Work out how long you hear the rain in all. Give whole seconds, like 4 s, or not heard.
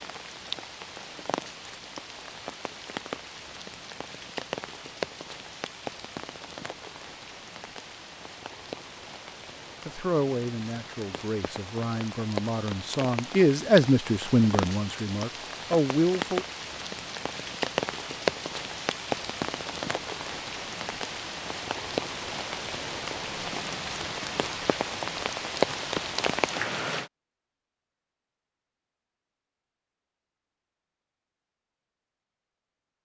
27 s.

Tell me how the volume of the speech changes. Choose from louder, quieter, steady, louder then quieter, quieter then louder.
louder.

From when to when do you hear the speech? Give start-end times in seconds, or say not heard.
9.8-16.4.